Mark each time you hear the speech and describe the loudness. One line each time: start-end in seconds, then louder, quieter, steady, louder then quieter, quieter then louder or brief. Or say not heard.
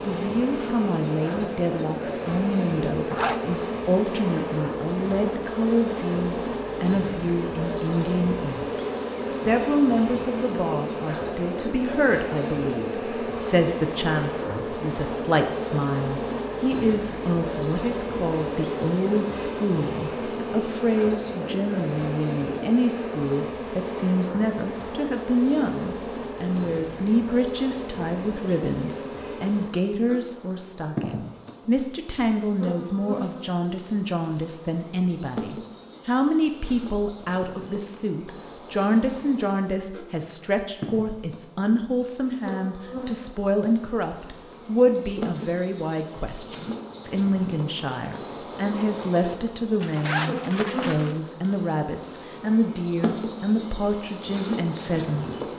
0.0-8.7 steady
9.3-55.5 steady.